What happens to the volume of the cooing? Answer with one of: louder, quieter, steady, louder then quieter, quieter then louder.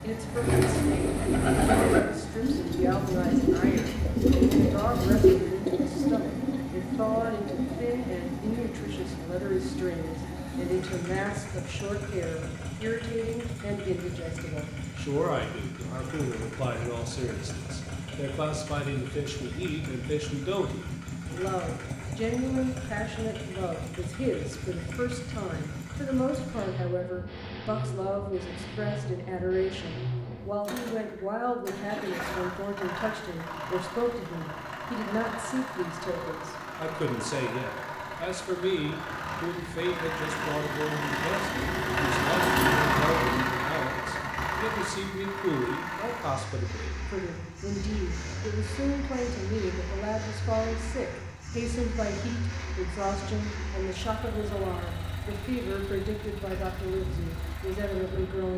quieter.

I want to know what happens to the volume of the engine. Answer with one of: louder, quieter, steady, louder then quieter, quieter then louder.
louder then quieter.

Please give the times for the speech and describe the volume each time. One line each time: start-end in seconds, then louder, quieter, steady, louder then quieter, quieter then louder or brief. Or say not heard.
0.0-58.5 steady.